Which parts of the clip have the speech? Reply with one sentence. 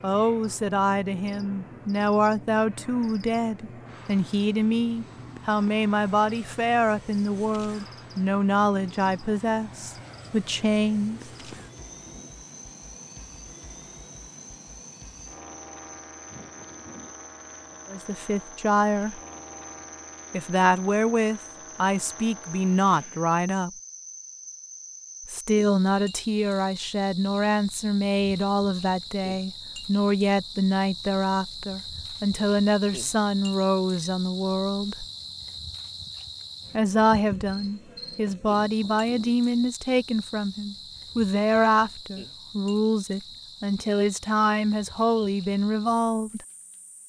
The speech can be heard from 0.0 to 11.2 s, from 17.9 to 19.2 s, from 20.3 to 23.7 s, from 25.2 to 35.0 s and from 36.7 to 46.4 s.